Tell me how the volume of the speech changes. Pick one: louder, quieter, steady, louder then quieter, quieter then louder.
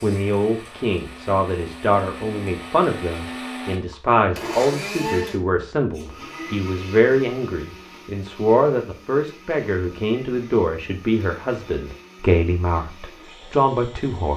steady.